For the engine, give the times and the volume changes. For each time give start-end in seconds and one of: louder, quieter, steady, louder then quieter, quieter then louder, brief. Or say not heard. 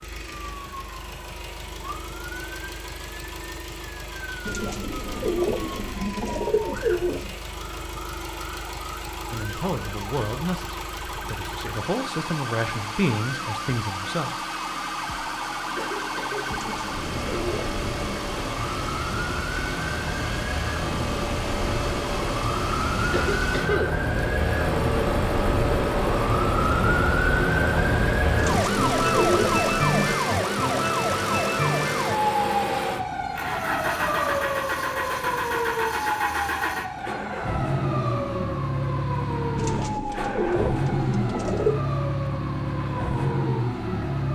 0.0-44.3 louder.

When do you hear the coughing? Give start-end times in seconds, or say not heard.
15.8-16.4, 23.1-23.9.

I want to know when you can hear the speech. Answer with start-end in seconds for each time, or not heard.
9.3-14.5.